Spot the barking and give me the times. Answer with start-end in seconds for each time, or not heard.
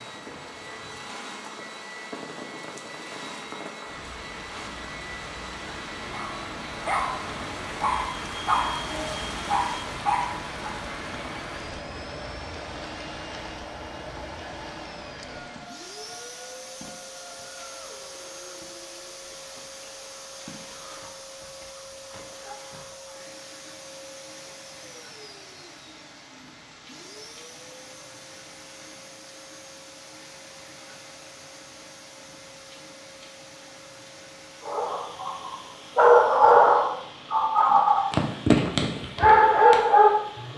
6.1-10.8, 34.6-40.5.